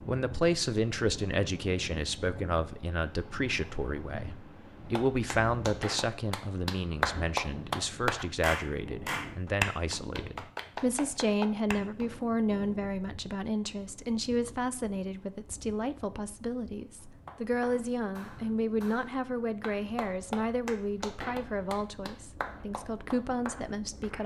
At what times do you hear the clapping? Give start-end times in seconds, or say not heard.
4.8-12.1, 17.0-24.2.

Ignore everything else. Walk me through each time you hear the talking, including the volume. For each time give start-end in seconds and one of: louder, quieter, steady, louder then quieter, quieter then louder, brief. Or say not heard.
0.0-24.2 steady.